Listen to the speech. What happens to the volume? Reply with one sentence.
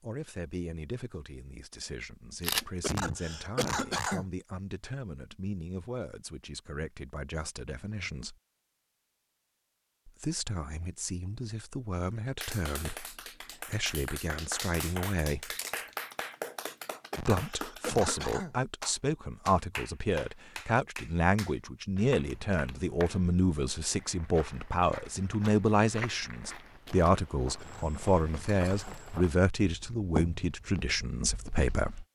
The loudness of the speech goes up.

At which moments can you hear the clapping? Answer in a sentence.
The clapping can be heard from 12.4 to 23.2 s.